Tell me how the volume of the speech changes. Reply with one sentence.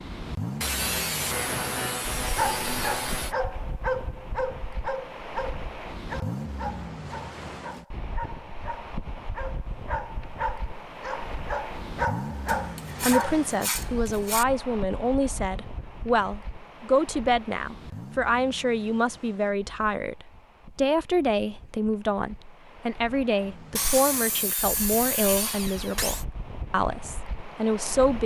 The loudness of the speech stays about the same.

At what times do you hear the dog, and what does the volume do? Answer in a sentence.
You can hear the dog from 2.2 to 13.4 s, getting quieter then louder.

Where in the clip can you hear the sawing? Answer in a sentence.
The sawing can be heard from 0.6 to 3.4 s, from 12.4 to 14.4 s and from 23.8 to 26.2 s.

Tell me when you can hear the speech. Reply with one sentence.
You can hear the speech from 13.0 to 28.2 s.